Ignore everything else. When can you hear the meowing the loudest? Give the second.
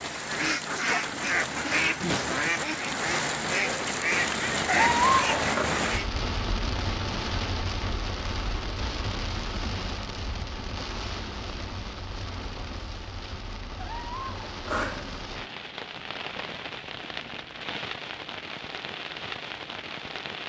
5 s.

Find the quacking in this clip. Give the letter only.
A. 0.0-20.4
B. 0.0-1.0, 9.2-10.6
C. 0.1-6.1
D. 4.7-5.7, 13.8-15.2
C.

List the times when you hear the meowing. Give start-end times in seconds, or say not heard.
4.7-5.7, 13.8-15.2.